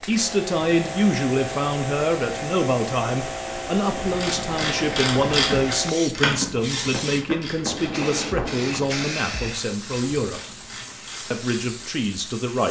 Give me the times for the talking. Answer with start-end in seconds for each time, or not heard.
0.1-10.4, 11.3-12.6.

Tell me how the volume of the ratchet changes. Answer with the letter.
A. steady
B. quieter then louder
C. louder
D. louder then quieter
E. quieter
E.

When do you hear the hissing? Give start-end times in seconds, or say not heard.
0.0-12.6.